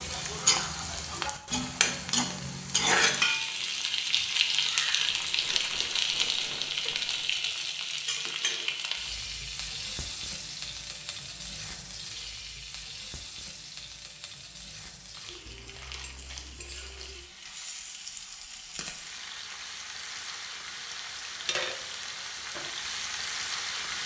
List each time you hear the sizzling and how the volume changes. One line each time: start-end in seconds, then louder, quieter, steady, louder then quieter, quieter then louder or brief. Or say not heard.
0.0-24.0 quieter then louder.